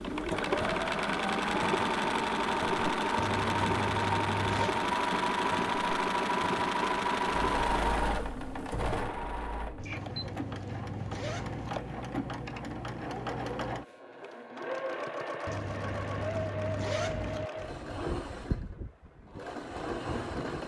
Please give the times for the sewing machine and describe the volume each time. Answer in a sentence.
You can hear the sewing machine from 0.0 to 20.6 s, getting quieter.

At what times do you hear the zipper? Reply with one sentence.
The zipper can be heard from 3.1 to 4.8 s, from 9.8 to 11.8 s and from 15.4 to 17.5 s.